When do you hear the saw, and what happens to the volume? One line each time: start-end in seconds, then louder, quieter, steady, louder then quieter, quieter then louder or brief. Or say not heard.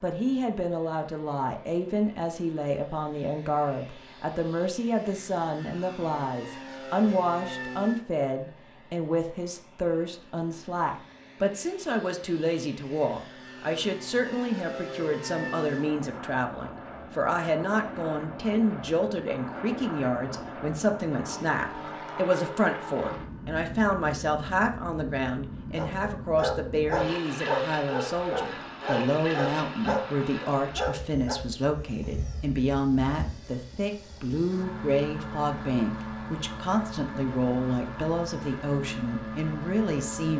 not heard.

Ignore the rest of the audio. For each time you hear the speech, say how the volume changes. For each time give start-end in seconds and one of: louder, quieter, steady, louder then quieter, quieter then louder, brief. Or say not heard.
0.0-40.3 steady.